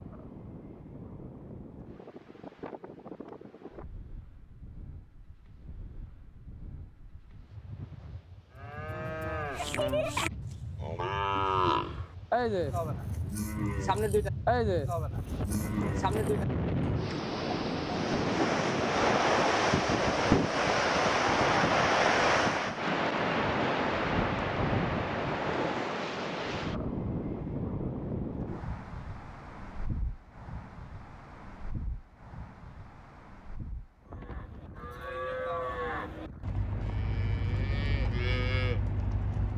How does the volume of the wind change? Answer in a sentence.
The loudness of the wind goes up, then down.